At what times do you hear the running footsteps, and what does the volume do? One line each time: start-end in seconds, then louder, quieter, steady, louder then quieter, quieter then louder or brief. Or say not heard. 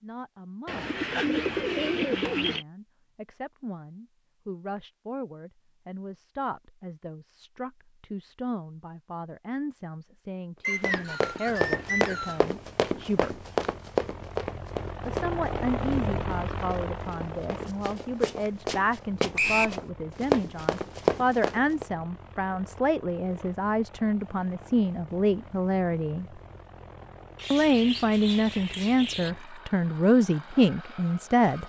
10.8-21.9 quieter then louder.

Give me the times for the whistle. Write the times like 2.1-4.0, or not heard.
10.6-12.4, 19.4-19.8.